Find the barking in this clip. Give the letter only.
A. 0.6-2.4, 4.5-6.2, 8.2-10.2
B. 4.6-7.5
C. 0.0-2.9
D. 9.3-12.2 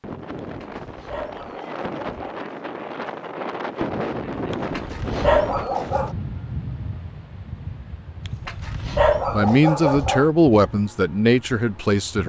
A.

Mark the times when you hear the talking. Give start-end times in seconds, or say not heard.
9.3-12.2.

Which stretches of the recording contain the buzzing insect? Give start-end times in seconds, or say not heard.
not heard.